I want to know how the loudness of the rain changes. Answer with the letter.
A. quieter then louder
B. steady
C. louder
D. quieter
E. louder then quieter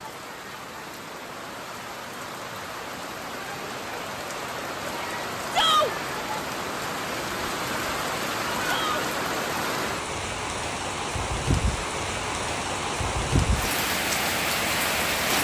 C.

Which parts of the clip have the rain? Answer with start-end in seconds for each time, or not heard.
0.0-15.3.